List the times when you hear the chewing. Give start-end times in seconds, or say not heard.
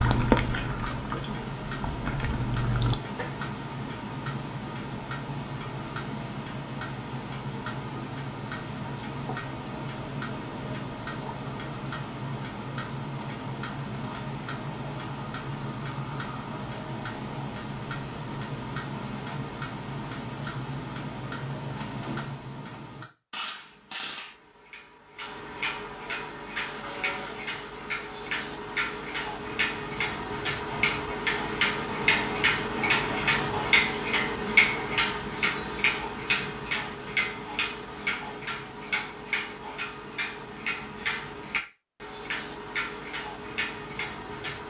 0.0-3.0.